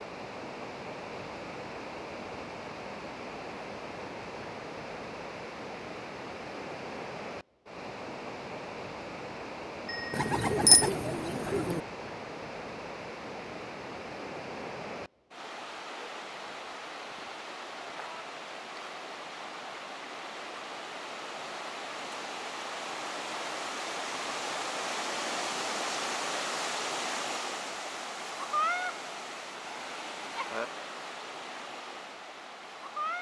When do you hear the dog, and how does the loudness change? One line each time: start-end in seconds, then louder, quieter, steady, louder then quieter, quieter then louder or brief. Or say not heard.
not heard.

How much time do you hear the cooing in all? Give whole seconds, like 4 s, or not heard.
2 s.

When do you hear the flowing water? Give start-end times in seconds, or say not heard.
0.0-33.1.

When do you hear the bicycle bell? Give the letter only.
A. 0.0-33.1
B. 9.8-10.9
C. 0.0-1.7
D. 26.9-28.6
B.